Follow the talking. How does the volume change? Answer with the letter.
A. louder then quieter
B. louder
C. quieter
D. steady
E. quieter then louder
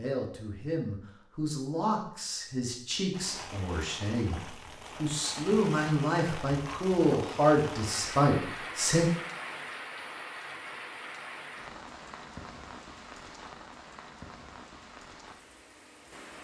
B.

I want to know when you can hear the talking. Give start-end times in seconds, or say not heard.
0.0-9.1.